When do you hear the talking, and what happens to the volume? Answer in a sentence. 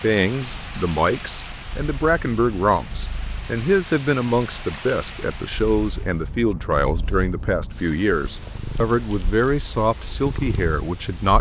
The talking can be heard from 0.0 to 11.3 s, at a steady volume.